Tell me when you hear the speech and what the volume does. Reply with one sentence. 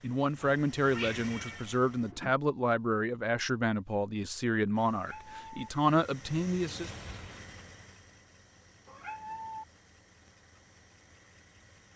You can hear the speech from 0.0 to 6.9 s, at a steady volume.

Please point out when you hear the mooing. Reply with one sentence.
You can't hear the mooing here.